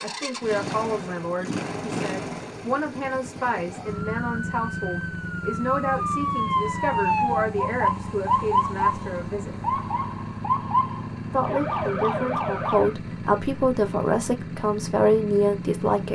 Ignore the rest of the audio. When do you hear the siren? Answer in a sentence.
You can hear the siren from 3.7 to 12.9 s.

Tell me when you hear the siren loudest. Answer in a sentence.
The loudest moment of the siren is at 8 seconds.